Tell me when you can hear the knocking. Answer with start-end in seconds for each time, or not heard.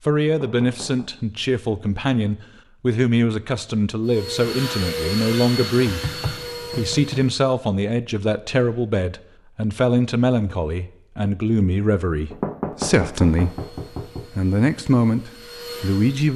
0.2-1.1, 5.8-7.3, 12.3-14.3.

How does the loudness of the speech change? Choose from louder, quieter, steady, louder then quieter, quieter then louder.
steady.